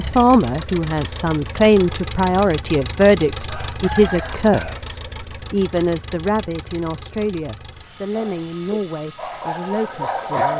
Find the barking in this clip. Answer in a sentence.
The barking can be heard from 8.1 to 10.5 s.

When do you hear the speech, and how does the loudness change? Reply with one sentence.
The speech can be heard from 0.0 to 10.5 s, getting quieter.